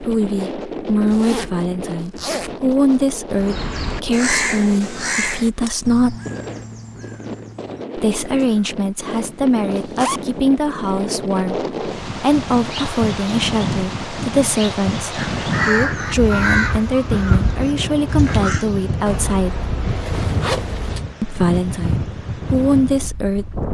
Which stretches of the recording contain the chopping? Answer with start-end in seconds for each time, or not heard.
not heard.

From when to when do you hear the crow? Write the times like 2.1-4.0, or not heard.
3.3-8.8, 15.2-18.6.